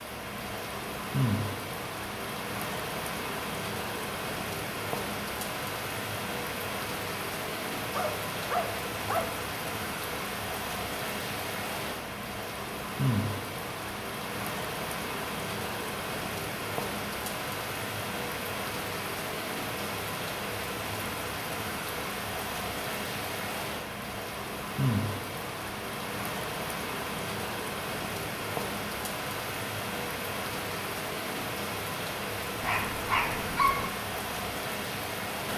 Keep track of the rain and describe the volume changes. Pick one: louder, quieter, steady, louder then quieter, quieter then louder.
steady.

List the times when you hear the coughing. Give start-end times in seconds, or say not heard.
not heard.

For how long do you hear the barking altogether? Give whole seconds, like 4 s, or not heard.
3 s.